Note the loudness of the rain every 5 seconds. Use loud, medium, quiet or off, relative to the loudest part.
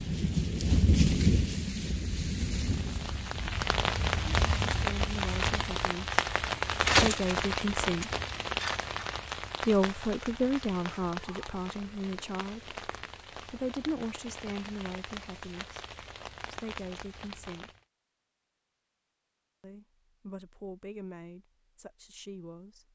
loud, loud, quiet, quiet, off.